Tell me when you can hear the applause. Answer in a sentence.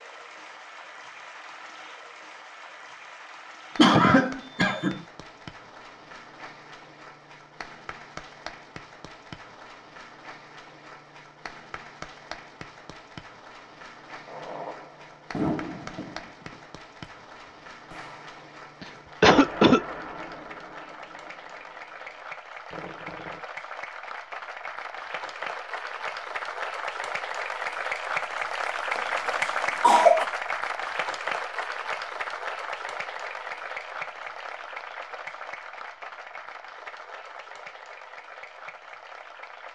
You can hear the applause from 0.0 to 39.7 s.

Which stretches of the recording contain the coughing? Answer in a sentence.
You can hear the coughing from 3.8 to 5.0 s, from 18.8 to 19.8 s and from 28.9 to 30.2 s.